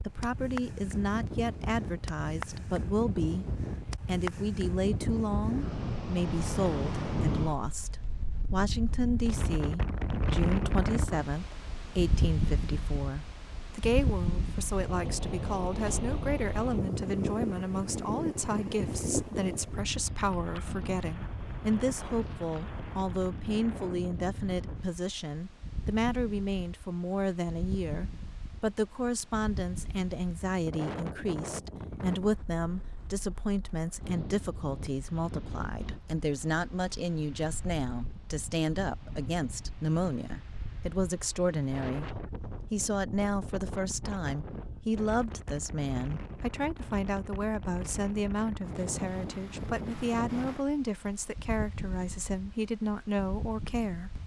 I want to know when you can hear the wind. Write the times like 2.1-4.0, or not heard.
0.0-54.2.